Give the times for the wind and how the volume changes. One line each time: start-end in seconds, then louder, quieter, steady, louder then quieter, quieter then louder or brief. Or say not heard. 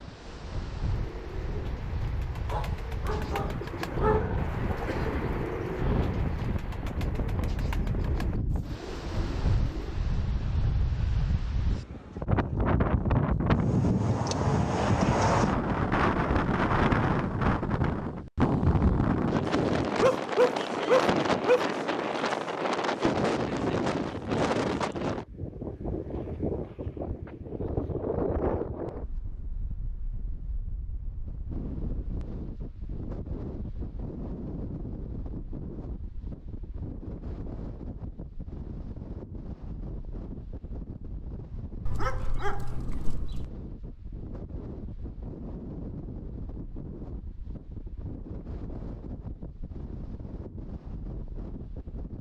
0.0-52.1 louder then quieter.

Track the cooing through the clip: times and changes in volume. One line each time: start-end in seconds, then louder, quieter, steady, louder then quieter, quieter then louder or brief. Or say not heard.
0.8-10.0 louder then quieter.